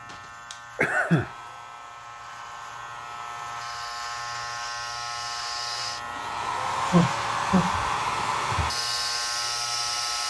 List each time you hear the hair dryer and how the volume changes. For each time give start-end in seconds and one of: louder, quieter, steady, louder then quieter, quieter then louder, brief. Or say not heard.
0.0-10.2 louder.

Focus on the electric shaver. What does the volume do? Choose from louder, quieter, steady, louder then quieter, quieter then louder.
louder.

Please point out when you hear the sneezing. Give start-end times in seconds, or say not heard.
0.8-1.3, 6.9-8.8.